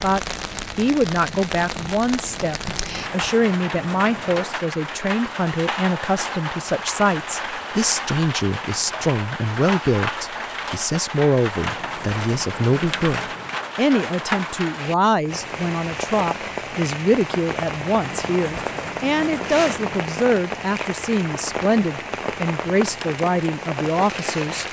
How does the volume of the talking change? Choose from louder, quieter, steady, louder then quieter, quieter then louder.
steady.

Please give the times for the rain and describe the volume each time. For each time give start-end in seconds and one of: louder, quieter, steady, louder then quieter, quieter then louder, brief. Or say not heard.
0.0-24.6 steady.